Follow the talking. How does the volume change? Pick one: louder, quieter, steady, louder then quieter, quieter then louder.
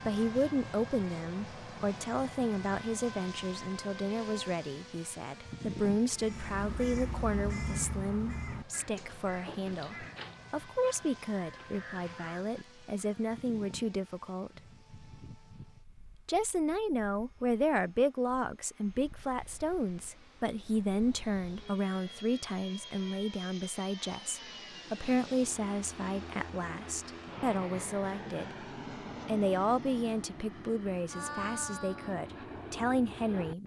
steady.